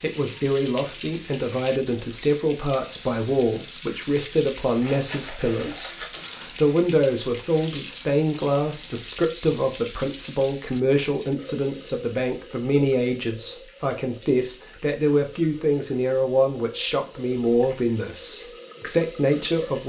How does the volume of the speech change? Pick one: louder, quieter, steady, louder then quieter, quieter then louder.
steady.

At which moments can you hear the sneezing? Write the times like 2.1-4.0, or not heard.
4.8-6.2.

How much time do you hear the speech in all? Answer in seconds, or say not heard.
20 s.